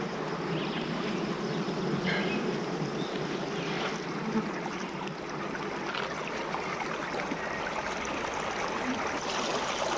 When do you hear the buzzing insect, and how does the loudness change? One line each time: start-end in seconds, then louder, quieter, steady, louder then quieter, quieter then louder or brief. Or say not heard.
0.0-9.9 quieter.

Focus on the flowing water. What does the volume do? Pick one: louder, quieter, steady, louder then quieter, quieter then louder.
louder.